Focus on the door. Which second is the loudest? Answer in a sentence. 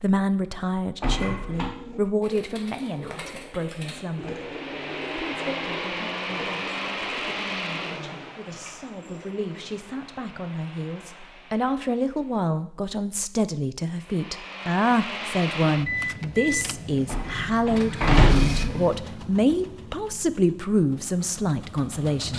The volume of the door peaks at 18 seconds.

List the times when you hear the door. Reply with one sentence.
You can hear the door from 1.0 to 1.7 s and from 17.1 to 18.6 s.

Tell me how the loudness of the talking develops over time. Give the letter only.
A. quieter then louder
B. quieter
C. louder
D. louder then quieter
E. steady
A.